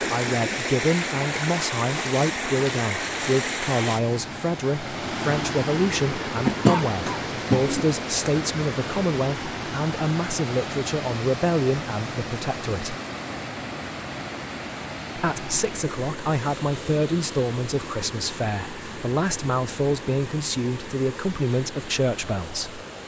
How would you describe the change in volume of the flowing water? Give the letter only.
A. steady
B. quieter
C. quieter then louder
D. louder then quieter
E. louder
B.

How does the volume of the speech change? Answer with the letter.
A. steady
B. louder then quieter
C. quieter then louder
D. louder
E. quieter
A.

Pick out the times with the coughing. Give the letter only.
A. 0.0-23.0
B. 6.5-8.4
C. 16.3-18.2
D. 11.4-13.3
B.